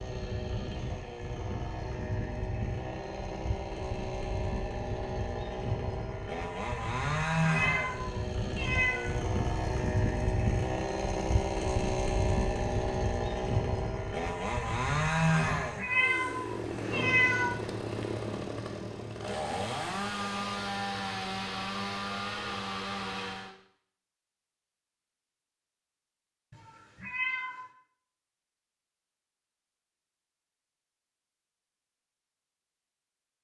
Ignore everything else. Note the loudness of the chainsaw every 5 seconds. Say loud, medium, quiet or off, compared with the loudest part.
medium, loud, loud, loud, loud, off, off.